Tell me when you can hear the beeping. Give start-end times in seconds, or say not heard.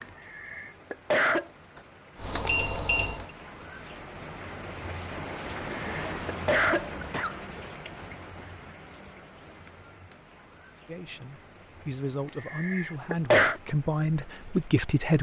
2.2-3.3.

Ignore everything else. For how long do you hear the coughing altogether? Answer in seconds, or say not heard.
5 s.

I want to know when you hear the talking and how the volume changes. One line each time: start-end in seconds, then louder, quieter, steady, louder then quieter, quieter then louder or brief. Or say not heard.
10.8-15.1 louder.